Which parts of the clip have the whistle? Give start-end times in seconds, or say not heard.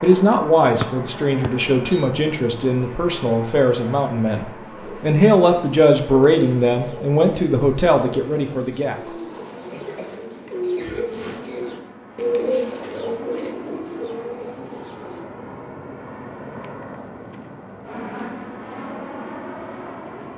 0.8-2.1.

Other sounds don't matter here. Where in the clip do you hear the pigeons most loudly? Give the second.
12 s.